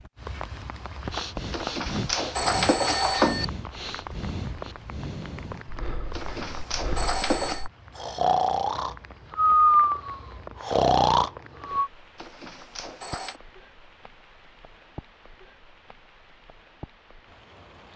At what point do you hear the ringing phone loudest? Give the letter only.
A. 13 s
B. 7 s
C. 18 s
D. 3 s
D.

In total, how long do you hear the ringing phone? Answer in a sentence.
The ringing phone can be heard for 5 seconds in total.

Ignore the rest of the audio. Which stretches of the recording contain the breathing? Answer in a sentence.
You can hear the breathing from 1.1 to 11.9 s.